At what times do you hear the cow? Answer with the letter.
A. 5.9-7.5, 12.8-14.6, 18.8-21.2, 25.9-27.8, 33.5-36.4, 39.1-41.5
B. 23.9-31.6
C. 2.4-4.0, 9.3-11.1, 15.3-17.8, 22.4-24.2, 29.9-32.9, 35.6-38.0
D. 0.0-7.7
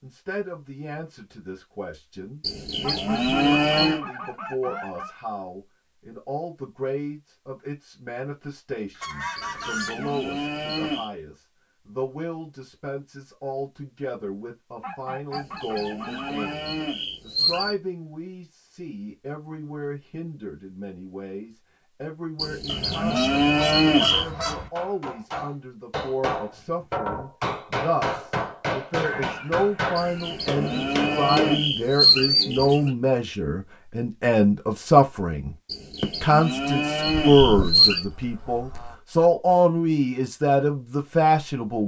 C.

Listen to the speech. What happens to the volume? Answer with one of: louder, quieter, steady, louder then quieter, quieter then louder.
louder.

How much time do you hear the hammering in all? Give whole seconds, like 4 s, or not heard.
8 s.